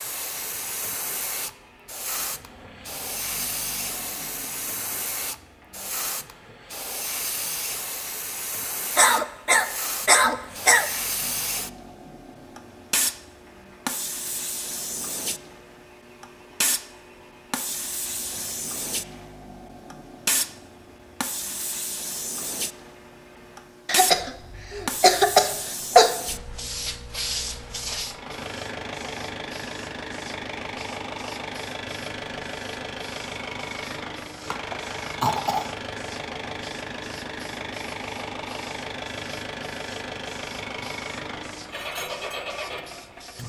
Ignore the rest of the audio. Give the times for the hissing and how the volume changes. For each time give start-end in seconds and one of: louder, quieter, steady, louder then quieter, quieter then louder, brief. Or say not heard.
0.0-43.4 quieter.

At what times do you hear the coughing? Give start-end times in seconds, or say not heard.
8.9-10.9, 23.9-26.1, 34.5-35.6.